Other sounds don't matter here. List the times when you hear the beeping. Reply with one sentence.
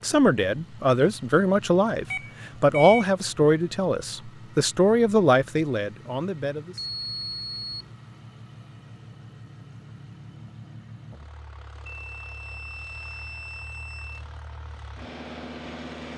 The beeping can be heard from 2.1 to 3.0 s, from 6.8 to 8.0 s and from 11.8 to 14.2 s.